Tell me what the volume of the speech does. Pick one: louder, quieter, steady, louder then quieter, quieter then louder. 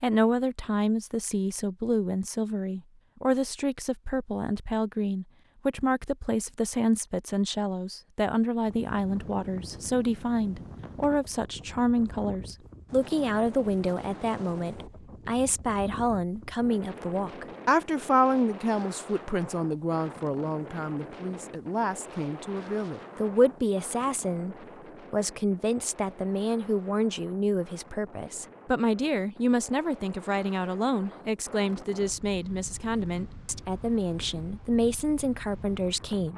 steady.